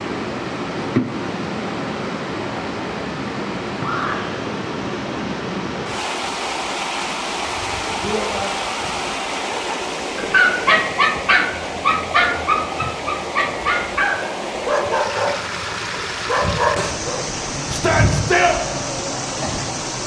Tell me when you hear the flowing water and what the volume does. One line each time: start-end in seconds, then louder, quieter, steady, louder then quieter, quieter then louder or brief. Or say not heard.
0.0-20.0 steady.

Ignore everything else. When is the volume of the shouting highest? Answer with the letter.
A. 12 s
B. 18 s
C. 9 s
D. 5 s
B.